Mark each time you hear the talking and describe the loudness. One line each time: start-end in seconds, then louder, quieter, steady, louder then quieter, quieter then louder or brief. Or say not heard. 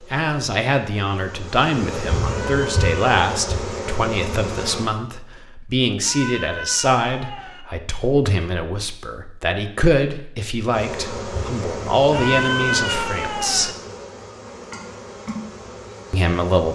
0.0-13.8 steady
16.1-16.6 brief.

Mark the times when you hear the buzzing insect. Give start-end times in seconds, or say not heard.
0.0-4.9, 10.7-16.6.